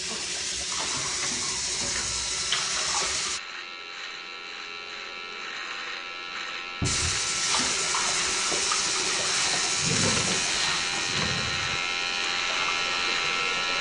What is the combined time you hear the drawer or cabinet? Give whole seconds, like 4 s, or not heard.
4 s.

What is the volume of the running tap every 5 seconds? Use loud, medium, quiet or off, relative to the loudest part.
loud, loud, medium.